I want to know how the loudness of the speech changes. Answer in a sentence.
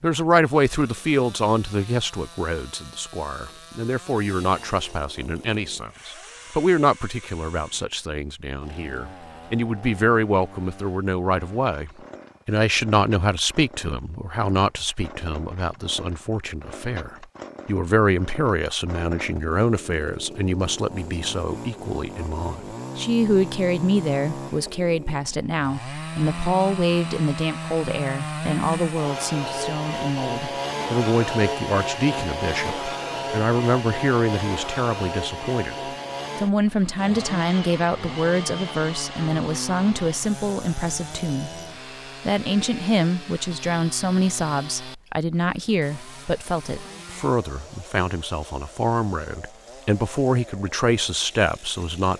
The volume of the speech stays about the same.